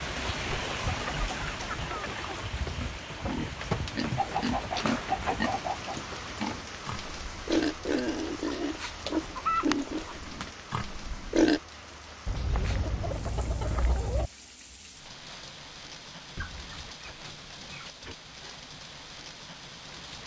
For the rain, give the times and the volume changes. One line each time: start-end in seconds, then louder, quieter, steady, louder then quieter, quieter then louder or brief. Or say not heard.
0.0-20.2 quieter.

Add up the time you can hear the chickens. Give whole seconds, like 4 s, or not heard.
9 s.